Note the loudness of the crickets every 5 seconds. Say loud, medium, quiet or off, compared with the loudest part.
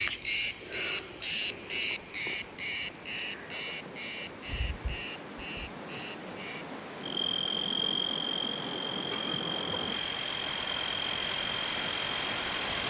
loud, medium, medium.